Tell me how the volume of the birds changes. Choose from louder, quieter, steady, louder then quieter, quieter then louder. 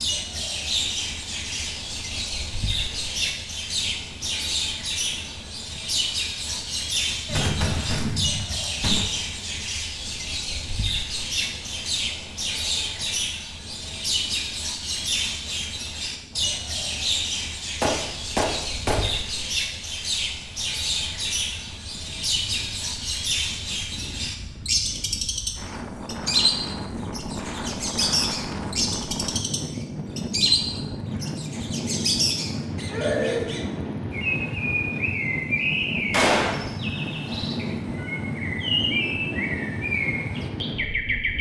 steady.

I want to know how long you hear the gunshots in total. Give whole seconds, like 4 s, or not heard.
4 s.